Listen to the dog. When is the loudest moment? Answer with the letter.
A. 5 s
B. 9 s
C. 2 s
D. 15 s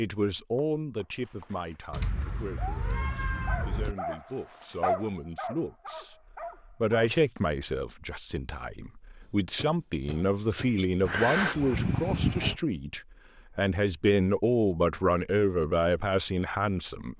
A.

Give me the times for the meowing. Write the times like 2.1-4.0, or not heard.
1.9-4.0, 11.0-12.6.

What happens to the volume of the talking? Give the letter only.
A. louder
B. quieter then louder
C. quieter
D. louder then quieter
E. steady
A.